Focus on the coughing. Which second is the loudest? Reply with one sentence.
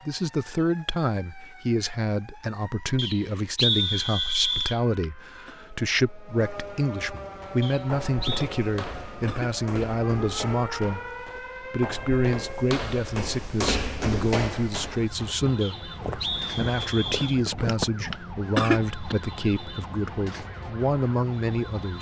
The loudest moment of the coughing is at 19 seconds.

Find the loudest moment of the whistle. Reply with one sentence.
The volume of the whistle peaks at 4 seconds.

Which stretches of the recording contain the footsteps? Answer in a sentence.
You can hear the footsteps from 7.3 to 18.1 s.